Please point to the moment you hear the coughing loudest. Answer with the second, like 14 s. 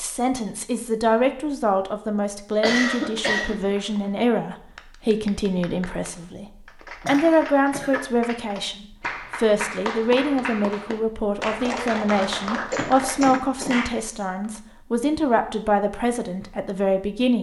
3 s.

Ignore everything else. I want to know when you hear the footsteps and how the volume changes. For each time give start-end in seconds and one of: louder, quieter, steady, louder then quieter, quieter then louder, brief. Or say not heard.
not heard.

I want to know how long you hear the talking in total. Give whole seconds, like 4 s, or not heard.
17 s.